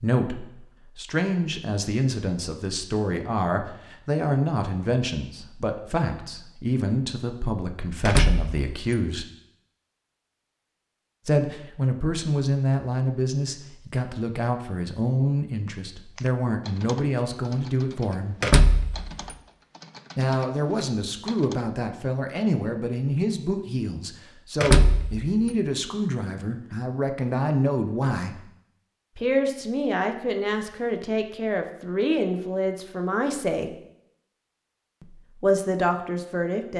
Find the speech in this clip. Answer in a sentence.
You can hear the speech from 0.0 to 9.3 s, from 11.2 to 18.4 s, from 20.1 to 28.4 s, from 29.1 to 33.8 s and from 35.0 to 36.7 s.